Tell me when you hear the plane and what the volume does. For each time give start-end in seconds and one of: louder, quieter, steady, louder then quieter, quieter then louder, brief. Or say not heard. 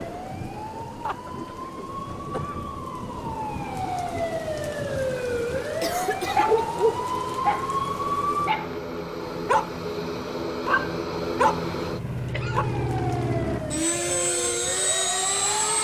0.0-15.7 louder.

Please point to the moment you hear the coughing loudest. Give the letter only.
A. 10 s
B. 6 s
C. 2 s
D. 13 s
B.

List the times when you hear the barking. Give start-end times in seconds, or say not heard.
6.2-7.7, 8.4-12.7.